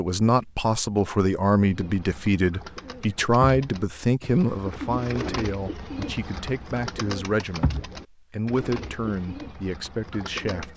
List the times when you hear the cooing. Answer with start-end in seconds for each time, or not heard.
1.6-10.7.